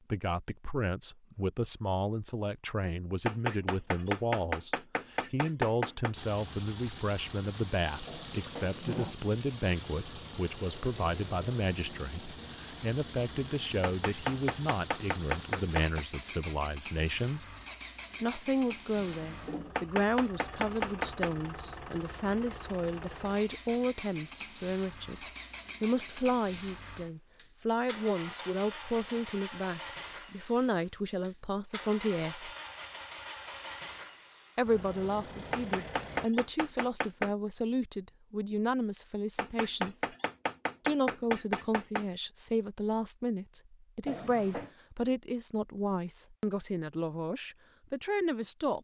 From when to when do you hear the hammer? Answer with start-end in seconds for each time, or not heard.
3.2-6.2, 13.8-16.1, 19.8-21.5, 35.5-37.4, 39.4-42.0.